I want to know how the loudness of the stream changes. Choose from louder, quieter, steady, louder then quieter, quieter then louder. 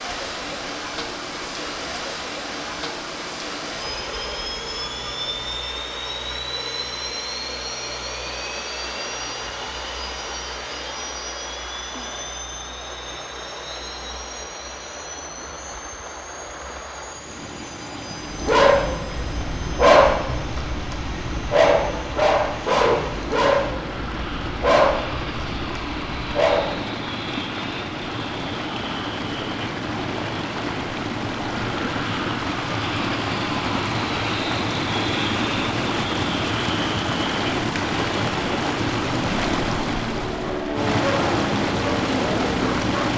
louder.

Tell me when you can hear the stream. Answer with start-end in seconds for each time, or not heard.
0.0-43.1.